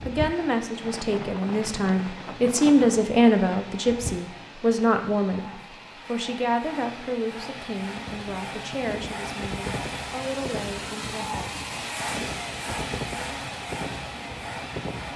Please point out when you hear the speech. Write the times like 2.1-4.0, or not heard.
0.1-11.4.